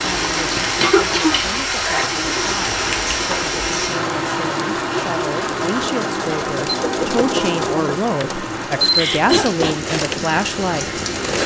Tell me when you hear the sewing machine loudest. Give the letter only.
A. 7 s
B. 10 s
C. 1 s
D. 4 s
A.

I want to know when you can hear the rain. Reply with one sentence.
The rain can be heard from 0.0 to 11.4 s.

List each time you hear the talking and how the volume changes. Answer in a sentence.
You can hear the talking from 0.0 to 11.0 s, getting louder.